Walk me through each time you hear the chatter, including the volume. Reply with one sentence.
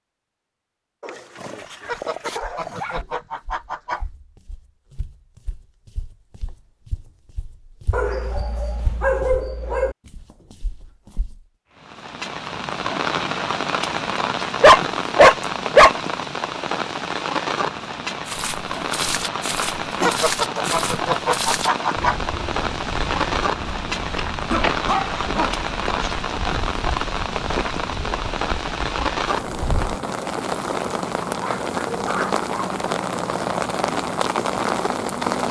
The chatter can't be heard in this clip.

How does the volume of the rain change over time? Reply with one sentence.
The loudness of the rain stays about the same.